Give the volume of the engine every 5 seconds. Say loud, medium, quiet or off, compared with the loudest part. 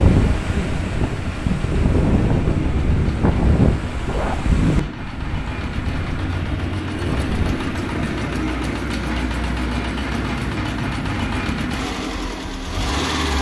medium, loud, loud.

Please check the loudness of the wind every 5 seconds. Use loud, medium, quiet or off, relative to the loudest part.
loud, medium, off.